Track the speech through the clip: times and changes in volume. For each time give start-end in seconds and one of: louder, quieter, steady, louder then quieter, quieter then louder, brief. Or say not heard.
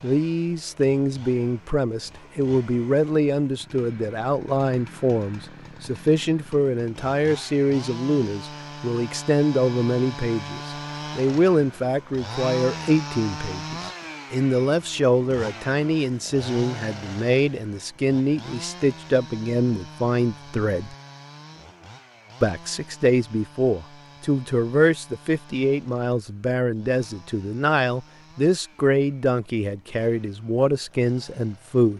0.0-20.9 steady
22.4-31.9 steady.